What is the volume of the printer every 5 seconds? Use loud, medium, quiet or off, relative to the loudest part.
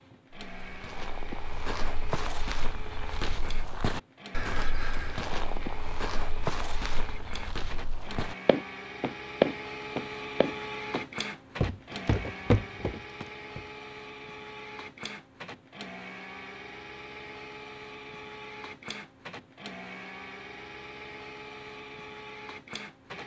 medium, loud, loud, loud, loud.